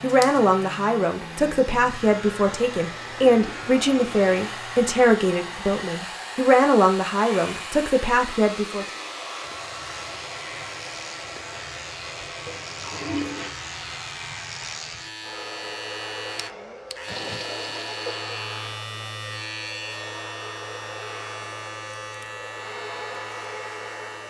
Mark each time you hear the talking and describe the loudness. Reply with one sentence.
You can hear the talking from 0.0 to 8.8 s, at a steady volume.